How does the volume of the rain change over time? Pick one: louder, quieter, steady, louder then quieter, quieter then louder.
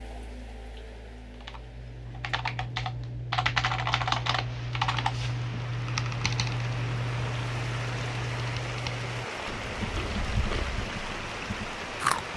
louder.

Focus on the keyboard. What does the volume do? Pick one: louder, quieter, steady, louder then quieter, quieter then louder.
quieter.